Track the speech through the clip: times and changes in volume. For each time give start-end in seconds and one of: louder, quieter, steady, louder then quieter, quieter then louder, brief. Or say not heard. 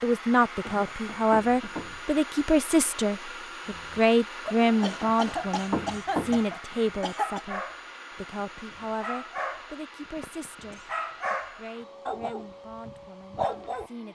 0.0-14.0 quieter.